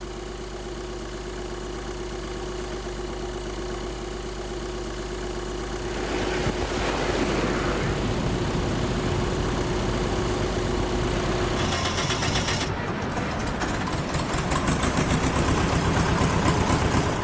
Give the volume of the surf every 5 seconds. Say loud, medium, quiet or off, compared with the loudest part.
off, loud, loud, loud.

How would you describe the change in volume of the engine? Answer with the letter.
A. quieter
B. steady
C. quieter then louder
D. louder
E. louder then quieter
D.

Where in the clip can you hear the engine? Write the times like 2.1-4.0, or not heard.
0.0-17.1.